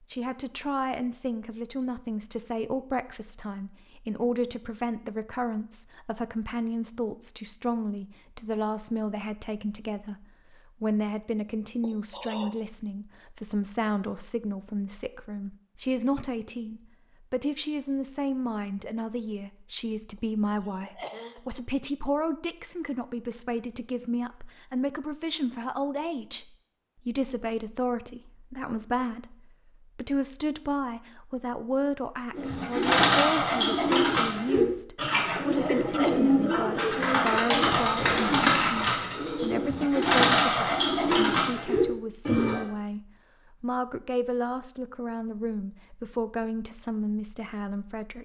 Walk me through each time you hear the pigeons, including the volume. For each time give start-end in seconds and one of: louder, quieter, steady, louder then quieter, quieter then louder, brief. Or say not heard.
32.3-42.6 steady.